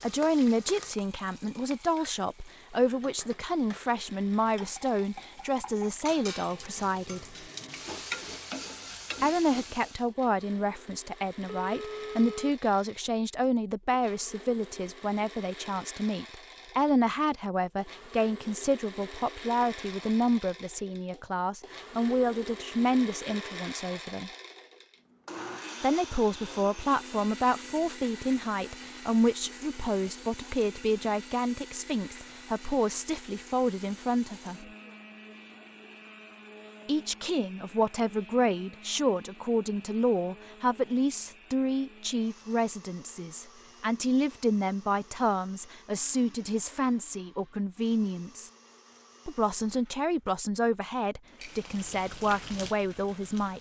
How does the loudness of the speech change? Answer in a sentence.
The volume of the speech stays about the same.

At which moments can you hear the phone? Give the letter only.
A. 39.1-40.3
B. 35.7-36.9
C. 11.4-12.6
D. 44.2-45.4
C.